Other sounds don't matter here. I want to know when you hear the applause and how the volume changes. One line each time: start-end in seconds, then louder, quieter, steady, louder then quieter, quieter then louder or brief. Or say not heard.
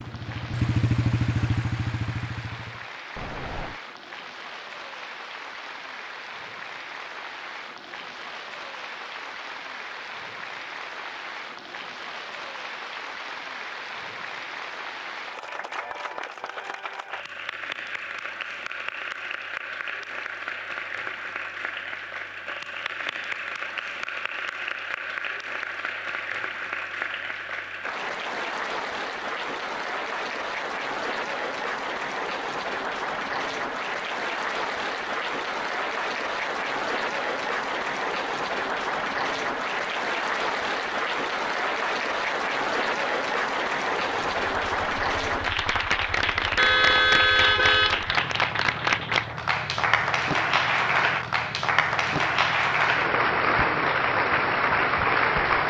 0.0-55.6 louder.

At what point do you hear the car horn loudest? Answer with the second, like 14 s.
47 s.